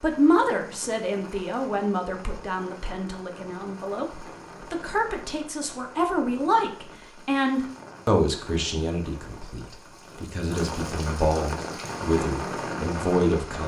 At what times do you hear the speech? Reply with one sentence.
The speech can be heard from 0.0 to 13.6 s.